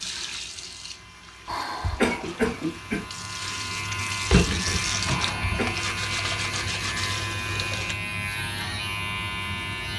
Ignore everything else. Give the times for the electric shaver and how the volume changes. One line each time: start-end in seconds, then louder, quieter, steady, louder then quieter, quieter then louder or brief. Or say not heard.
0.0-9.9 louder.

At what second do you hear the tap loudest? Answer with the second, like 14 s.
5 s.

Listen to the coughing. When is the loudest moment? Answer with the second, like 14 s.
2 s.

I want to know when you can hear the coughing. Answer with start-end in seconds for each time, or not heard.
1.4-3.0, 5.0-5.8.